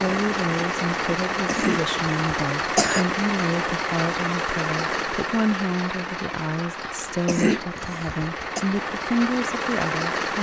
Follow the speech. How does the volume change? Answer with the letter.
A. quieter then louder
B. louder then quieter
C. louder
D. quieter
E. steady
E.